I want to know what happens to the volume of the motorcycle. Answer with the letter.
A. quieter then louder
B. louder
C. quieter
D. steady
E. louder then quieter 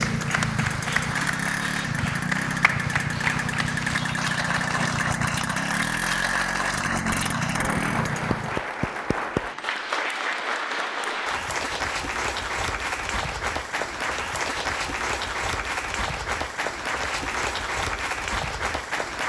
D.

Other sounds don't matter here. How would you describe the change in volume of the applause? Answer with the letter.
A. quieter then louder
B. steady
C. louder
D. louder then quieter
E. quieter
B.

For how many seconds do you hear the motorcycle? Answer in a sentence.
The motorcycle can be heard for 9 seconds in total.